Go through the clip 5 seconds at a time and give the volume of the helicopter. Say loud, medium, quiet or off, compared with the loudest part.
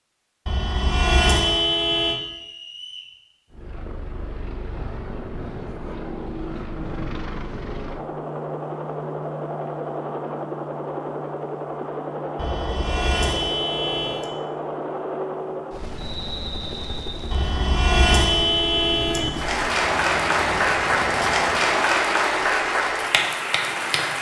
medium, loud, loud, loud, loud.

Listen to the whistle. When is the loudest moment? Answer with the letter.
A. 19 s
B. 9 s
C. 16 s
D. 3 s
C.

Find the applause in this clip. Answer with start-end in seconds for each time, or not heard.
19.3-24.1.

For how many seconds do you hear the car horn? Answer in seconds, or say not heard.
6 s.